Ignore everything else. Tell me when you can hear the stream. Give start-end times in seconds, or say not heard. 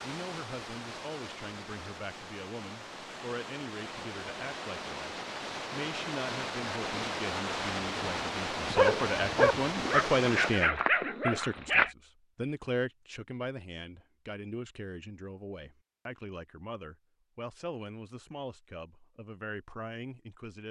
0.0-10.7.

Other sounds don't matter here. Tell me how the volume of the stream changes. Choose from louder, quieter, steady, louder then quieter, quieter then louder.
louder.